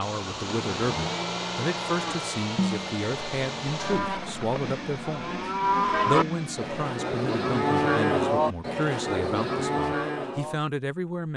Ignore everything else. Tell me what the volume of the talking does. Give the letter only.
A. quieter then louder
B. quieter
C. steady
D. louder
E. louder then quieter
C.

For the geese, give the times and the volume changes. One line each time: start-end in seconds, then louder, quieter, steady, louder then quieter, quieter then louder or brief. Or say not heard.
not heard.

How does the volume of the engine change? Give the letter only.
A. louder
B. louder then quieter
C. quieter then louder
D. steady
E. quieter
E.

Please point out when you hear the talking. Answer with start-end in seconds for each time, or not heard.
0.0-5.2, 6.0-11.3.